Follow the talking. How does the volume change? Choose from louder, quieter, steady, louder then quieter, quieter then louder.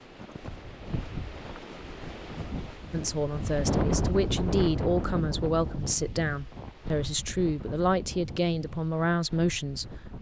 steady.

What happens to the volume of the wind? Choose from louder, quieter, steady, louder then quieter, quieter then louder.
louder then quieter.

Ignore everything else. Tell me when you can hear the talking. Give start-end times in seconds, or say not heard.
2.9-10.1.